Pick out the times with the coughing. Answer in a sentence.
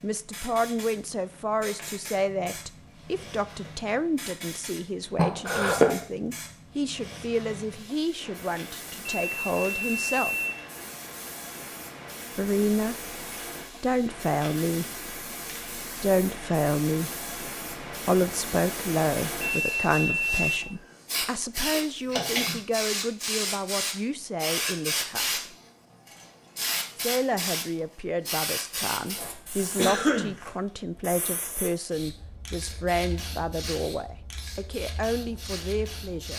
You can hear the coughing from 5.2 to 6.0 s, from 21.7 to 22.6 s and from 29.8 to 30.4 s.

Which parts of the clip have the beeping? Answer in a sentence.
The beeping can be heard from 9.0 to 10.6 s and from 19.4 to 20.6 s.